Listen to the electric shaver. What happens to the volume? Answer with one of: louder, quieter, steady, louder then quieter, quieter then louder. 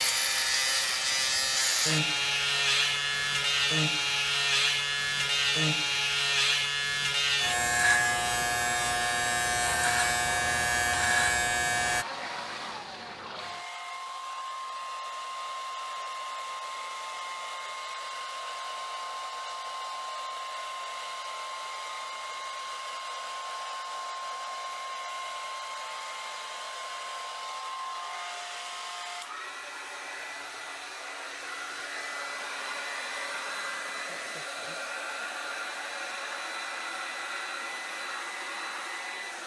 steady.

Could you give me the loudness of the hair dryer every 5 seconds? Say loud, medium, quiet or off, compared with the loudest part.
loud, medium, loud, loud, loud, loud, loud, loud.